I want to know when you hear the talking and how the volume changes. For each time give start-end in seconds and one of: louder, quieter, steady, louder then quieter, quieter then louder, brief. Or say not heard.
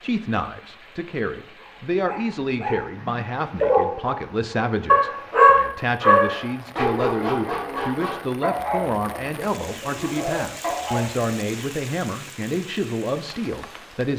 0.0-14.1 steady.